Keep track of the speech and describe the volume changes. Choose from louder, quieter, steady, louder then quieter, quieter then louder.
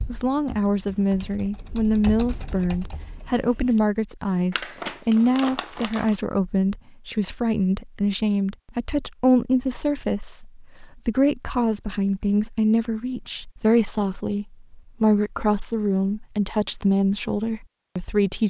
steady.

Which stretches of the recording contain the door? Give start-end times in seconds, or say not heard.
not heard.